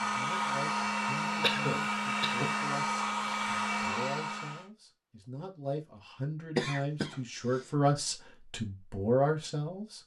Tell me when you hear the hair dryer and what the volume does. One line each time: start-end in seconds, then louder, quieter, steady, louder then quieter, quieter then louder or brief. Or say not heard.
0.0-4.7 steady.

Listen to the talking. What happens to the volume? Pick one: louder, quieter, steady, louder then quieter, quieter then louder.
louder.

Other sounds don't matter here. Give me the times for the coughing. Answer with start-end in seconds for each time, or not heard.
1.4-2.6, 6.5-7.7.